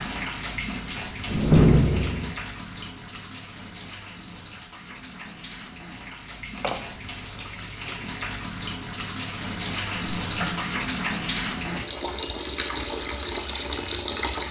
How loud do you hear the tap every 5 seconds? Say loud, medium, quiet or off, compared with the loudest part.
medium, medium, loud.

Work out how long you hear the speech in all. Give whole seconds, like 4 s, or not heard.
not heard.